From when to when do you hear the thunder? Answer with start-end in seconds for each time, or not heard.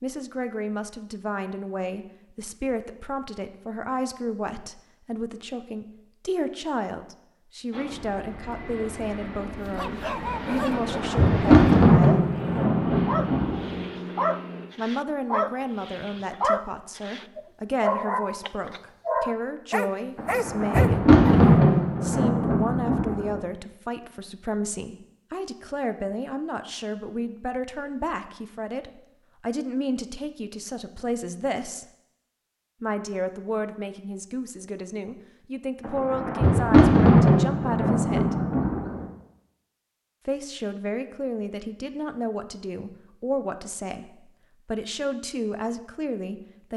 10.6-13.8, 20.1-23.4, 35.8-39.0.